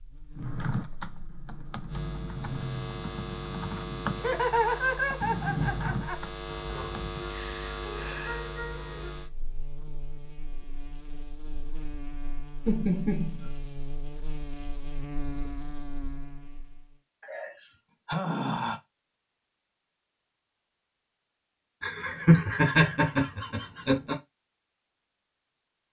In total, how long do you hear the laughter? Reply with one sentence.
You can hear the laughter for 5 seconds altogether.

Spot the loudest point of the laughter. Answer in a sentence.
The loudest moment of the laughter is at 22 seconds.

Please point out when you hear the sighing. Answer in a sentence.
You can hear the sighing from 6.5 to 9.1 s and from 17.2 to 18.8 s.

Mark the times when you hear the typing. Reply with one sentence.
The typing can be heard from 0.3 to 7.3 s.